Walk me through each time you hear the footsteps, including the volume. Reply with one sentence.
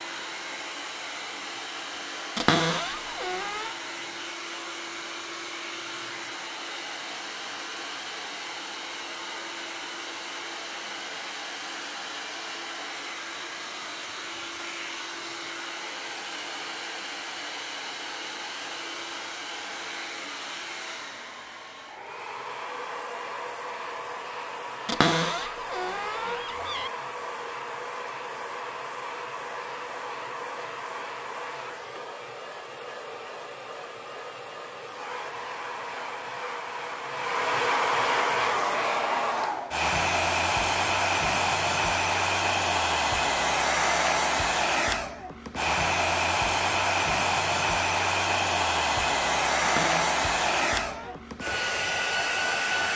The footsteps can't be heard in this clip.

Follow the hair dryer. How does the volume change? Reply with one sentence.
The loudness of the hair dryer goes up.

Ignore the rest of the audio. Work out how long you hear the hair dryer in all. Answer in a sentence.
The hair dryer can be heard for 53 seconds in total.